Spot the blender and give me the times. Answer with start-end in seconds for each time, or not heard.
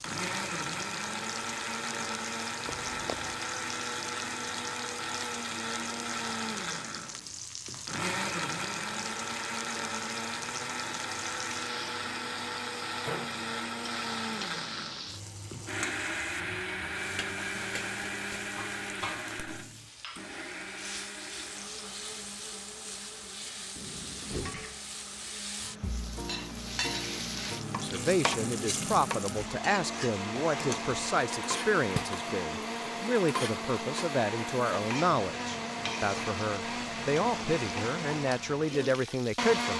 0.0-39.7.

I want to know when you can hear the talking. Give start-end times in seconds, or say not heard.
27.8-39.7.